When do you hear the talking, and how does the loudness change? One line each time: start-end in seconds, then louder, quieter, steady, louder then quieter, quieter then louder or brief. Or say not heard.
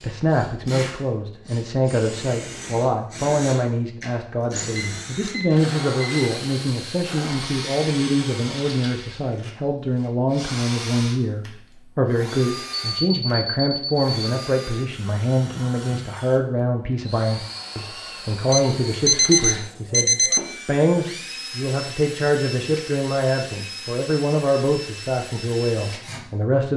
0.0-26.7 steady.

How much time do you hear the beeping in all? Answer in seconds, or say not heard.
5 s.